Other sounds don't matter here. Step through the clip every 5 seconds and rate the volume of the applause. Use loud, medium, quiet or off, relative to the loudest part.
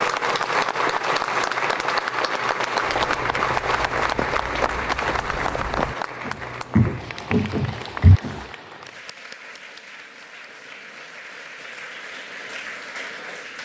loud, medium, quiet.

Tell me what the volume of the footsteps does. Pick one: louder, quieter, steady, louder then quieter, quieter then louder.
louder.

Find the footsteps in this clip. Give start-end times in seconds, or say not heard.
3.0-8.4.